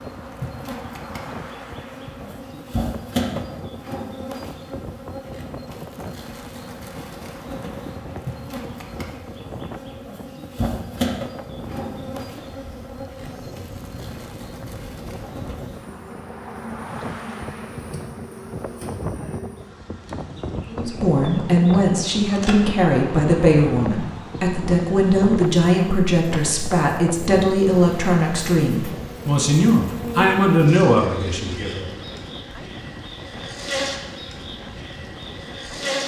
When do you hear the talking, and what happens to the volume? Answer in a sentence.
You can hear the talking from 20.6 to 31.9 s, at a steady volume.